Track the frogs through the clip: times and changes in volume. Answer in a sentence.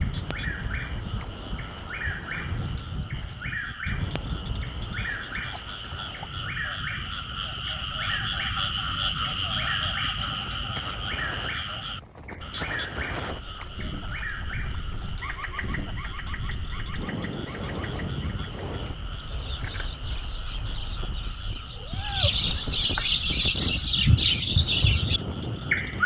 You can hear the frogs from 0.0 to 26.0 s, getting louder then quieter.